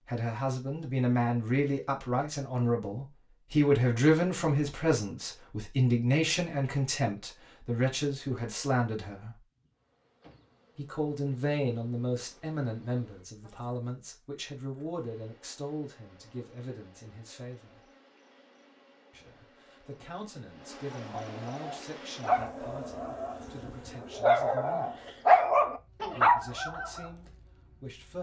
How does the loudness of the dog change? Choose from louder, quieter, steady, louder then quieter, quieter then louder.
quieter then louder.